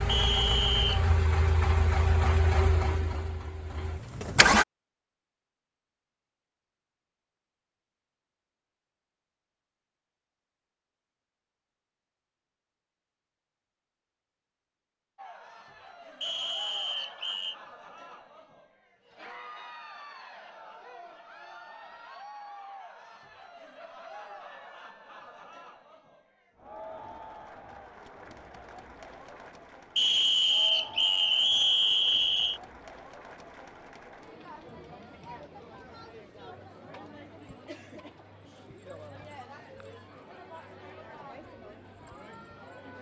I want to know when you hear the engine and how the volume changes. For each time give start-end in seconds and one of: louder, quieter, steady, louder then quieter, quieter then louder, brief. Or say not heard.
0.0-4.7 quieter.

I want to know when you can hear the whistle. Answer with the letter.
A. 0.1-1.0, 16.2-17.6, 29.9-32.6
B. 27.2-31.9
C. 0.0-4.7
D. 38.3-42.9
A.